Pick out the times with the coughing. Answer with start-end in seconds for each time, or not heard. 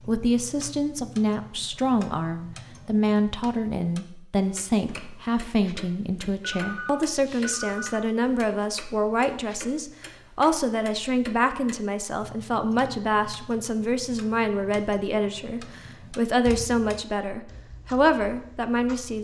not heard.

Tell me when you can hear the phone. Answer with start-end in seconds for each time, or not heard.
6.4-8.1.